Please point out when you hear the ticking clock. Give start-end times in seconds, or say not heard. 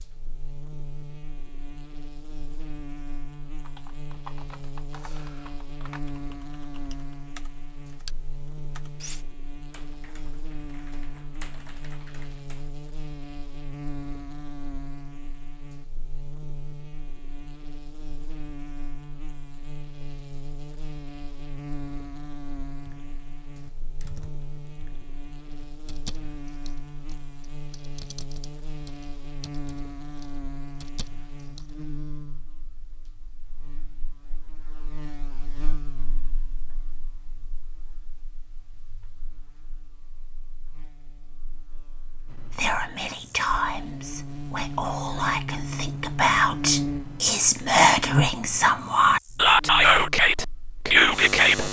not heard.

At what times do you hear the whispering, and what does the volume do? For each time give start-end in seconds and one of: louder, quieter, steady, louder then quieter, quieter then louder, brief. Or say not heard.
42.3-51.6 louder.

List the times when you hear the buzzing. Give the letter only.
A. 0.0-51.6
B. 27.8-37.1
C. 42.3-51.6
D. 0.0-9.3
A.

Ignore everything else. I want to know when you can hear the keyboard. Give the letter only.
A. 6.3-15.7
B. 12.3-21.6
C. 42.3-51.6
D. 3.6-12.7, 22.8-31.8
D.